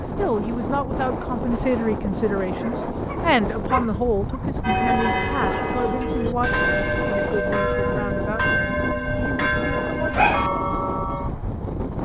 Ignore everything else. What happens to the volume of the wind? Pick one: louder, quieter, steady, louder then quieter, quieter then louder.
steady.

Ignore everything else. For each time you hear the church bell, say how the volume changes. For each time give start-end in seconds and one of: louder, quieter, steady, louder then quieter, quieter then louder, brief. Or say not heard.
4.6-11.3 steady.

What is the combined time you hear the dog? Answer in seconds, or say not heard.
2 s.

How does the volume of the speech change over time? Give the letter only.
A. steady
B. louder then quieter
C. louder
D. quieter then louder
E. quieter
E.